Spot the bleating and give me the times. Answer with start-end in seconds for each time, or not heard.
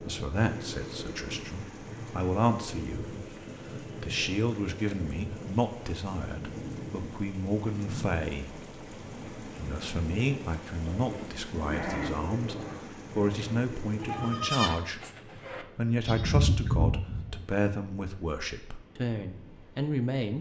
10.8-17.4.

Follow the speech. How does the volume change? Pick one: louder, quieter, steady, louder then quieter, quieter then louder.
steady.